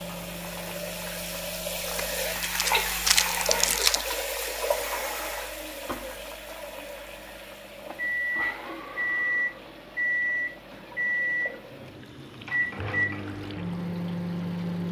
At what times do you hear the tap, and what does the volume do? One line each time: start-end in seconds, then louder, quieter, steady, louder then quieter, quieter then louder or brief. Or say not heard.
0.0-14.8 quieter.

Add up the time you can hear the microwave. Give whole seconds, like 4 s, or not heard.
15 s.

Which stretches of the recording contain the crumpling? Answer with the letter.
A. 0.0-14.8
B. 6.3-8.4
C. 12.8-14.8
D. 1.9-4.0
D.